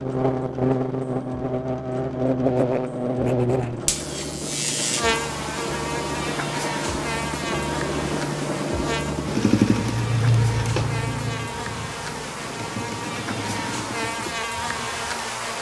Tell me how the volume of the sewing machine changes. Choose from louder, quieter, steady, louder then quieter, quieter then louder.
louder then quieter.